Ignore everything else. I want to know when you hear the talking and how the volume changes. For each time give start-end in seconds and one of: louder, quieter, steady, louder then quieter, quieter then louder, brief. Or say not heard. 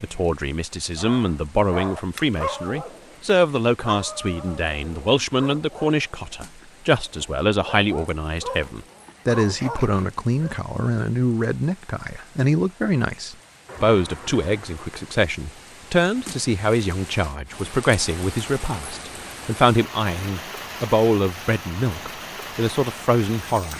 0.0-23.7 steady.